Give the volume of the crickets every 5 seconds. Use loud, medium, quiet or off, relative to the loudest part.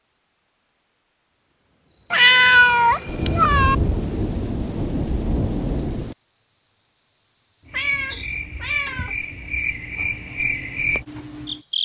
quiet, medium, loud.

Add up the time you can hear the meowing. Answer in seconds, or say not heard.
3 s.